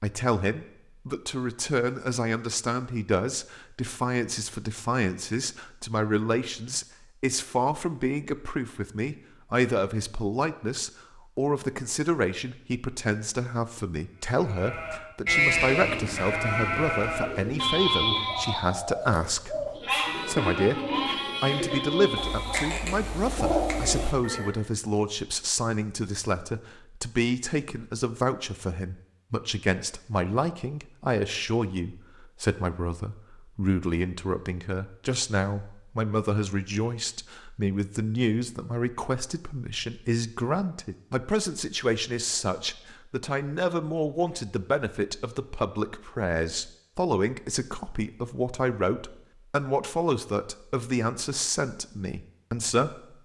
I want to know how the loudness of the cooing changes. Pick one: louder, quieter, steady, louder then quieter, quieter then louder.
louder.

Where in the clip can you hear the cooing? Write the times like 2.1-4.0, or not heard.
15.8-24.5.